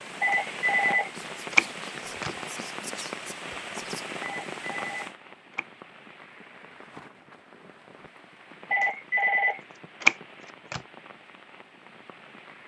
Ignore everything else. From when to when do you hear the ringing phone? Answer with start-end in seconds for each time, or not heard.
0.2-2.3, 4.2-5.7, 8.7-10.8.